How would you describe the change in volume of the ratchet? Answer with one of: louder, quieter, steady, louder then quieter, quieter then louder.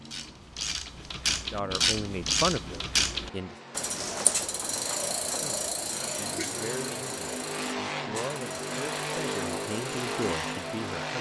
quieter.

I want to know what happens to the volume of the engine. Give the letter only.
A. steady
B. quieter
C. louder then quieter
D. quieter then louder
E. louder
E.